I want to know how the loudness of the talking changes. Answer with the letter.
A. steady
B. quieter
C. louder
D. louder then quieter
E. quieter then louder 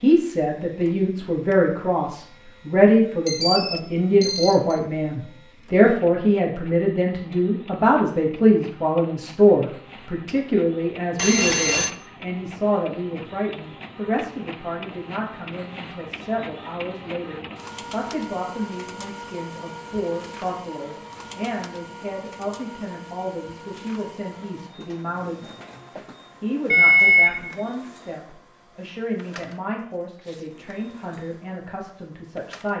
B.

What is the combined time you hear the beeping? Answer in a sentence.
You can hear the beeping for 3 seconds altogether.